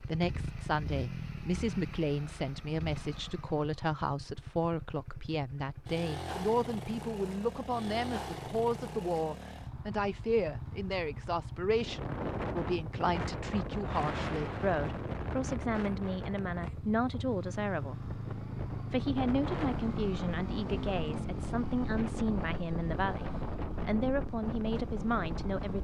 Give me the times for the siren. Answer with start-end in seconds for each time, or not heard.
not heard.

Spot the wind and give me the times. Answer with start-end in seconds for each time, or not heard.
11.7-25.7.